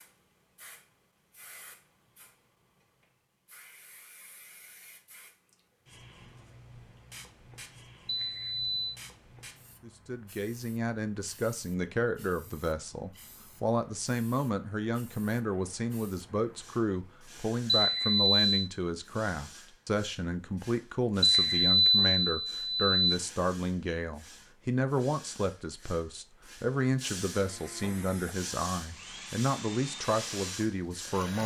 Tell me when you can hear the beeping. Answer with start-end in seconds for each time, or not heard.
8.1-8.8, 17.6-18.5, 21.2-23.1.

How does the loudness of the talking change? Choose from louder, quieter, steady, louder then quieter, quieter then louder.
steady.